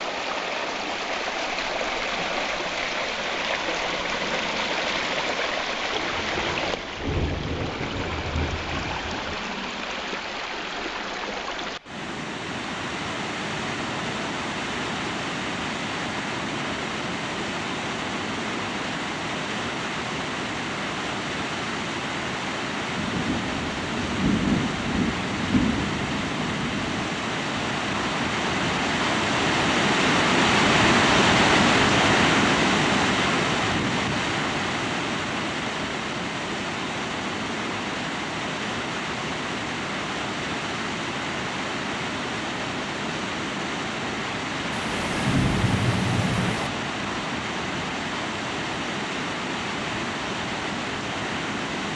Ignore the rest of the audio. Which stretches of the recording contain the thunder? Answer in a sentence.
You can hear the thunder from 5.9 to 9.4 s, from 22.9 to 27.0 s and from 44.7 to 46.7 s.